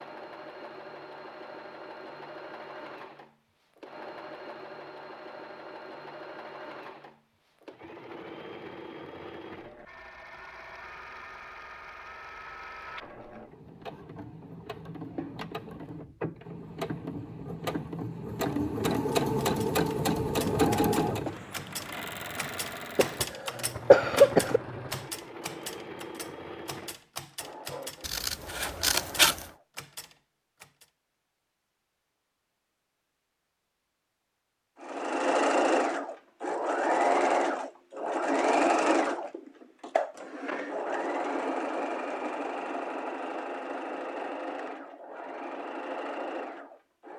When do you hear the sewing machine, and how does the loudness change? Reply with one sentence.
The sewing machine can be heard from 0.0 to 29.6 s, getting louder then quieter; and from 34.8 to 47.1 s, getting quieter.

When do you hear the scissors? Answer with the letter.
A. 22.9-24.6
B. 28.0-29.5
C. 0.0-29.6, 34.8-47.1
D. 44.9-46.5
B.